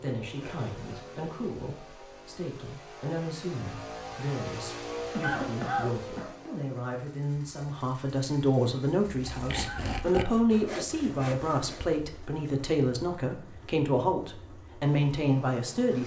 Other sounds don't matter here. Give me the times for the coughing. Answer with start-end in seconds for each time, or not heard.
5.1-6.3, 9.6-10.8.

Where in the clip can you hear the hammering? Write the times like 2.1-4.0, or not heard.
not heard.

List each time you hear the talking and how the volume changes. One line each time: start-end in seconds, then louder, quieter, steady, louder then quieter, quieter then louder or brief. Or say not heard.
0.0-16.0 louder.